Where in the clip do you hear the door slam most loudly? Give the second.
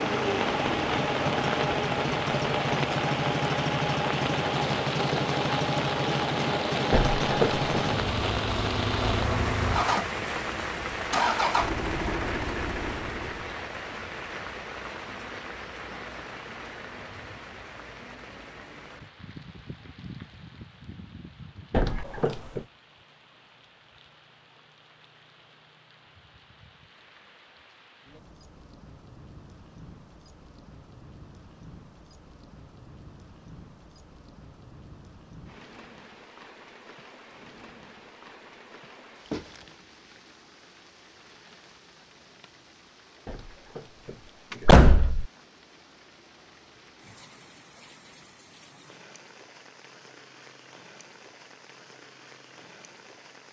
45 s.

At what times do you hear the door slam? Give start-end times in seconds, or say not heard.
6.9-7.7, 21.7-22.6, 43.2-43.8, 44.5-45.2.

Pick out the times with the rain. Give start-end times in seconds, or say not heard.
0.0-53.4.